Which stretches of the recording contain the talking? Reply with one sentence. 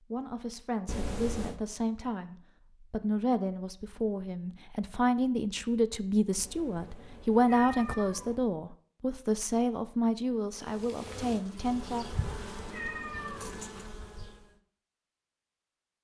You can hear the talking from 0.1 to 12.1 s.